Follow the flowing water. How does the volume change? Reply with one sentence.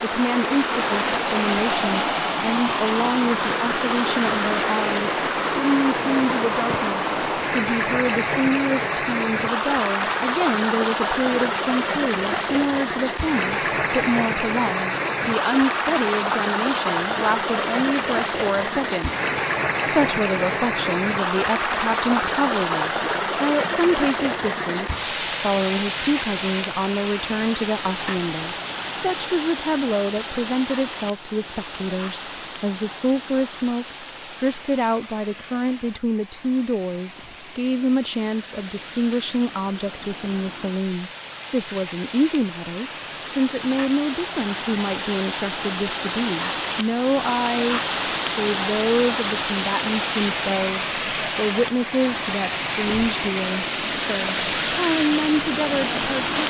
The volume of the flowing water goes down, then up.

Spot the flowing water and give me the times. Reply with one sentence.
The flowing water can be heard from 0.0 to 56.4 s.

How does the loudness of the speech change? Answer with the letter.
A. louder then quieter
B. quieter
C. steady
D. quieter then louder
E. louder
C.